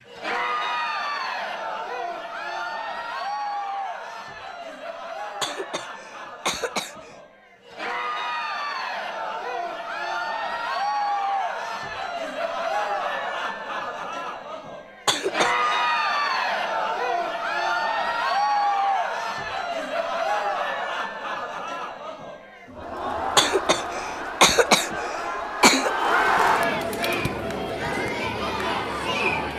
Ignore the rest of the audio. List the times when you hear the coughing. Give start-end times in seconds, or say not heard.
5.4-7.2, 15.1-15.8, 23.4-25.9.